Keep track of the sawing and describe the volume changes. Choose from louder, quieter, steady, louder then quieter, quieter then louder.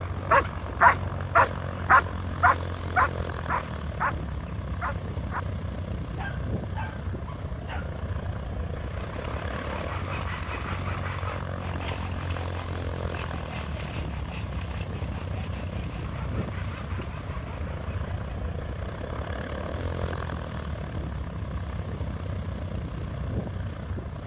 quieter.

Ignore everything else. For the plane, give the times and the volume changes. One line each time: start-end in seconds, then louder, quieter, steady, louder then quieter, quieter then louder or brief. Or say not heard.
0.0-24.2 steady.